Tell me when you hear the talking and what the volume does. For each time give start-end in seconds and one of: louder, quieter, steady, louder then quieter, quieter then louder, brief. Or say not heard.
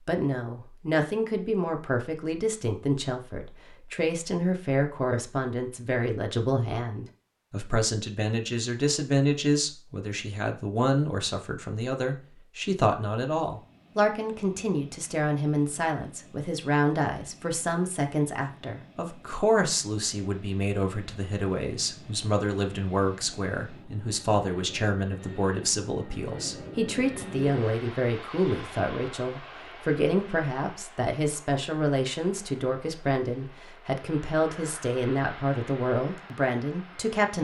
0.1-37.3 steady.